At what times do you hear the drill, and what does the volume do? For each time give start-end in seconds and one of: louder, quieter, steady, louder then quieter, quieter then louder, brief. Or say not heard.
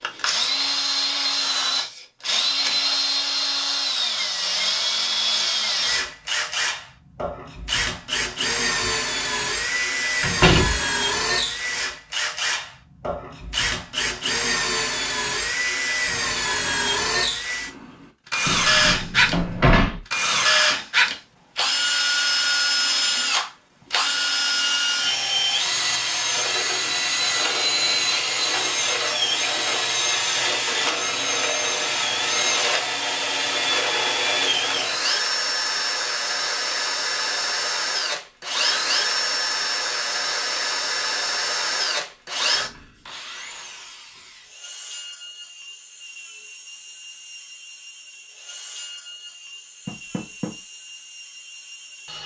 0.0-52.2 quieter.